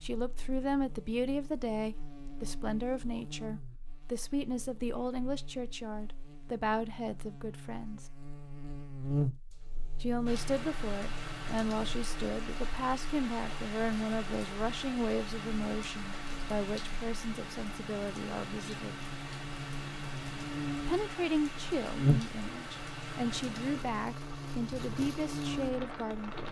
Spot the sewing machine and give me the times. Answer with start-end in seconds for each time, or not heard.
not heard.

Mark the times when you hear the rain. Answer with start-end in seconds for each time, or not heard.
10.2-26.4.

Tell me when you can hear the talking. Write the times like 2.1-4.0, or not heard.
0.0-8.1, 10.0-18.9, 20.9-26.4.